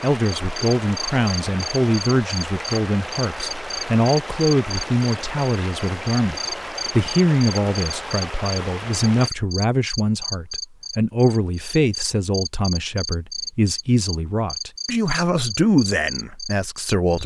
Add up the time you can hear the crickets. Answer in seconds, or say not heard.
17 s.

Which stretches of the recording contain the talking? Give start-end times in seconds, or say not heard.
0.0-17.2.